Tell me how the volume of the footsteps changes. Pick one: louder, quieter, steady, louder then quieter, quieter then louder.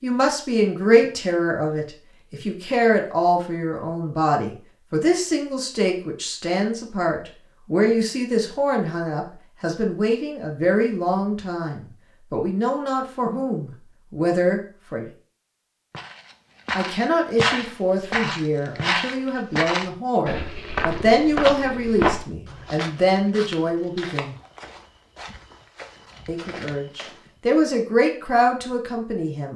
quieter.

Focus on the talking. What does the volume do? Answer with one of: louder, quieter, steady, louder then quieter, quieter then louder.
steady.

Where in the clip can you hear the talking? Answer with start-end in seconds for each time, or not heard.
0.0-15.1, 16.8-24.4, 26.2-29.5.